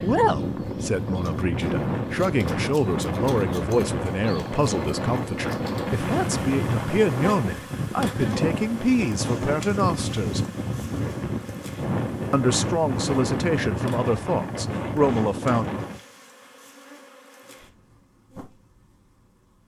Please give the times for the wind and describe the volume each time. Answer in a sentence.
You can hear the wind from 0.0 to 16.0 s, at a steady volume.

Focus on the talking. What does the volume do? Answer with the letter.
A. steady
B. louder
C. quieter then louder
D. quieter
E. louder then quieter
A.